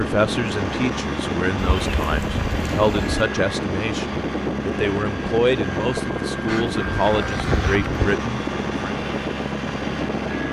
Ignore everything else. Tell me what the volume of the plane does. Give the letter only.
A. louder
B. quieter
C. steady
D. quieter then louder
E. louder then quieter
C.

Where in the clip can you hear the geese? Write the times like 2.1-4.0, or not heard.
1.6-3.2, 6.5-8.2.